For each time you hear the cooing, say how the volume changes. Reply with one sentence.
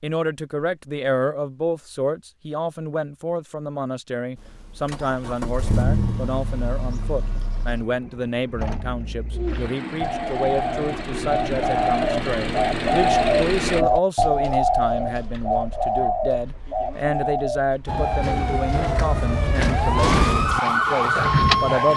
The cooing can be heard from 9.3 to 18.1 s, getting louder then quieter.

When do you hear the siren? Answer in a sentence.
You can hear the siren from 17.9 to 21.9 s.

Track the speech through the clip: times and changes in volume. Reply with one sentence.
The speech can be heard from 0.0 to 21.9 s, at a steady volume.